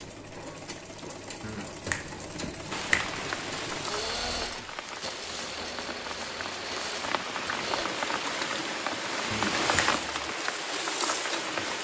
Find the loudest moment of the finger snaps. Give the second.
3 s.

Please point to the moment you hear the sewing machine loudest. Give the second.
4 s.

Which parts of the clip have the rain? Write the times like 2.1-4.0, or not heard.
2.7-11.8.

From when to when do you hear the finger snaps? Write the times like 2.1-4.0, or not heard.
1.4-3.2, 9.3-10.3.